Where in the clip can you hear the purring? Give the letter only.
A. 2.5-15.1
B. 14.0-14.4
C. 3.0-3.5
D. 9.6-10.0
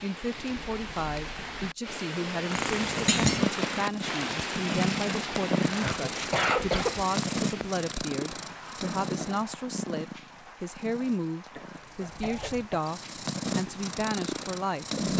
A.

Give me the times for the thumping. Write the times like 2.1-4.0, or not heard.
3.0-3.5.